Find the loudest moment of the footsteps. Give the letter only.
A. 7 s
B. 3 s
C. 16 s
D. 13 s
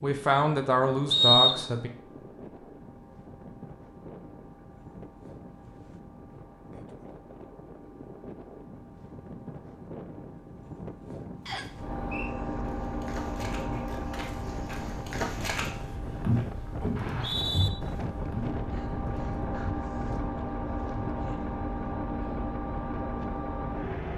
C.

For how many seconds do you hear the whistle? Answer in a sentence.
The whistle can be heard for 2 seconds in total.